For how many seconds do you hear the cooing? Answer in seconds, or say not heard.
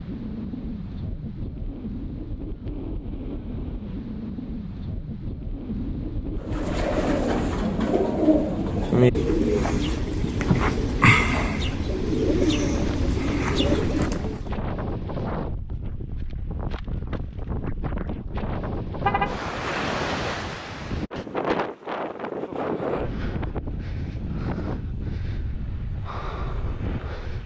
8 s.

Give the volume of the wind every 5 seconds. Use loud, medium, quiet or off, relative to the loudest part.
medium, loud, loud, loud, loud, medium.